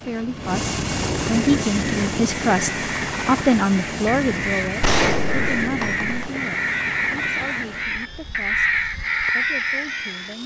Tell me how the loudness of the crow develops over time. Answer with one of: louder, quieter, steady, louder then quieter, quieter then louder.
louder.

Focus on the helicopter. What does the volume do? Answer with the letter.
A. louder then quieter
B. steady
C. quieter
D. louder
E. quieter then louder
C.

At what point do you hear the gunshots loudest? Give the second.
5 s.